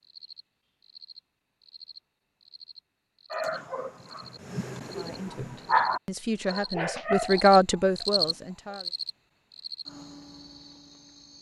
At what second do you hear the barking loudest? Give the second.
6 s.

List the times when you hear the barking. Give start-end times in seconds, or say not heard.
3.3-8.8.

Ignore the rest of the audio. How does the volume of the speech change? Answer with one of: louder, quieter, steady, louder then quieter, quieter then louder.
louder then quieter.